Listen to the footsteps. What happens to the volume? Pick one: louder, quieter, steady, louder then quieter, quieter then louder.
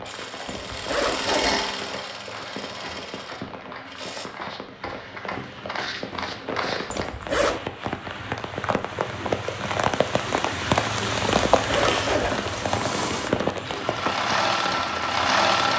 louder.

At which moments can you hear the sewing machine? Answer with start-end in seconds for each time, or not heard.
0.0-4.3, 11.8-15.7.